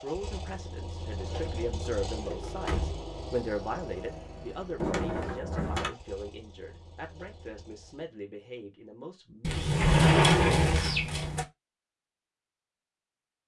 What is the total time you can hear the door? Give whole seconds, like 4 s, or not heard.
5 s.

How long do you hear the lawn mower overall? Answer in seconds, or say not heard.
8 s.